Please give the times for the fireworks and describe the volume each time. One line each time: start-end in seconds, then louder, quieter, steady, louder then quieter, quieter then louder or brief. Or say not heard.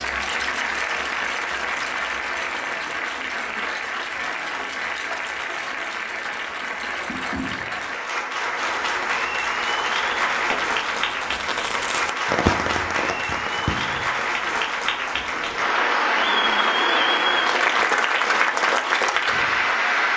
8.8-14.2 louder then quieter.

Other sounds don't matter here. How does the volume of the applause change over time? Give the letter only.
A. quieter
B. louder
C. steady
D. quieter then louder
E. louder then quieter
B.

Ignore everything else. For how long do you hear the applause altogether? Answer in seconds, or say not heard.
20 s.